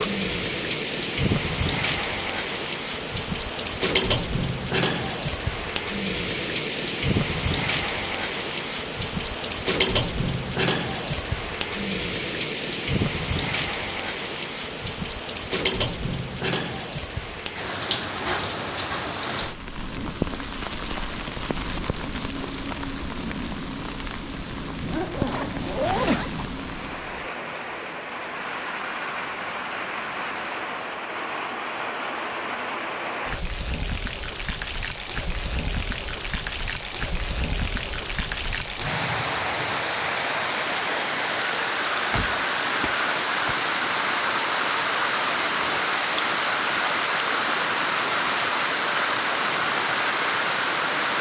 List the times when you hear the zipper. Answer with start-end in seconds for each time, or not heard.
24.8-26.5.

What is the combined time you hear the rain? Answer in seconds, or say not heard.
51 s.